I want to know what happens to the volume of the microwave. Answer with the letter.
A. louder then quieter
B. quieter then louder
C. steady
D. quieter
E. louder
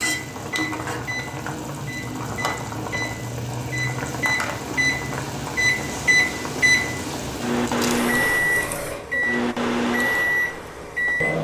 E.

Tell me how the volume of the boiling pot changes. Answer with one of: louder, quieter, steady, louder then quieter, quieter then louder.
quieter.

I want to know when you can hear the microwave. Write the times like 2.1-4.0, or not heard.
0.0-11.3.